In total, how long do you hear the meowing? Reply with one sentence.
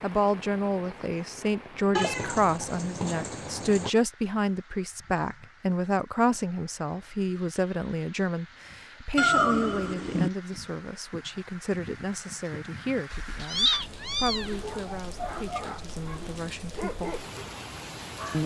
The meowing can be heard for 5 seconds in total.